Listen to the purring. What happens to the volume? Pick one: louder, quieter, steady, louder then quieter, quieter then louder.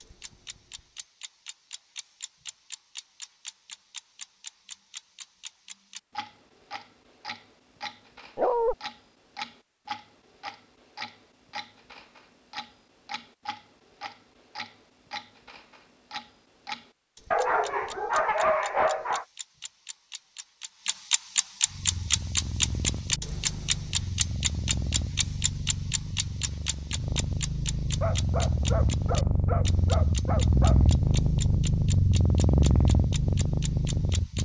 louder.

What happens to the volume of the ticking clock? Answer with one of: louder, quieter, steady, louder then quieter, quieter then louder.
louder then quieter.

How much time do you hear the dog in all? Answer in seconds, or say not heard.
5 s.